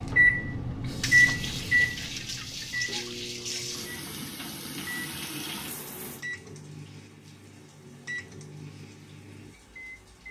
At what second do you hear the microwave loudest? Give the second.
1 s.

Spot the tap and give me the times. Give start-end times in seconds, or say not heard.
0.0-10.2.